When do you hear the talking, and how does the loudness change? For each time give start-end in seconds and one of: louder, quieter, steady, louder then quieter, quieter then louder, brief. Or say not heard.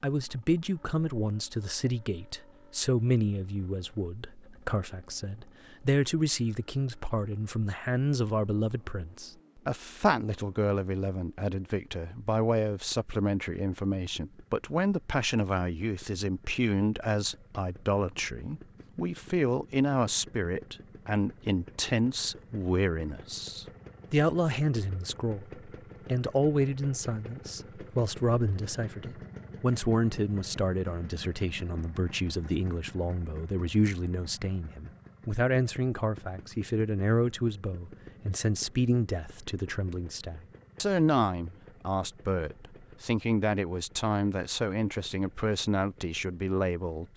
0.0-47.1 steady.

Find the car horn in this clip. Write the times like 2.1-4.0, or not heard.
not heard.